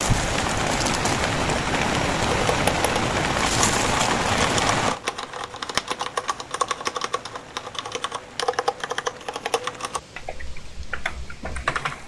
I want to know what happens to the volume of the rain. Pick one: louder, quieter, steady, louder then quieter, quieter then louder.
quieter.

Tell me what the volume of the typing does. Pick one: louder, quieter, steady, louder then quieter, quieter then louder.
quieter.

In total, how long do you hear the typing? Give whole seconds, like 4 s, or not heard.
10 s.